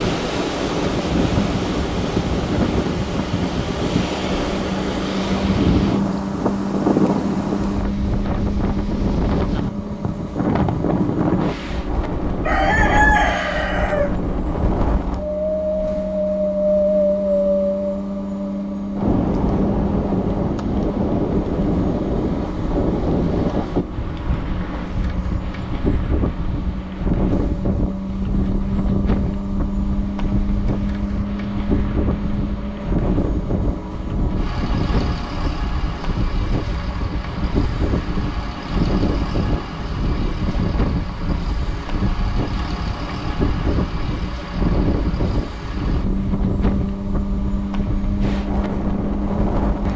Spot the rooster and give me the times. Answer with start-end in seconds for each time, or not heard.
12.4-14.2.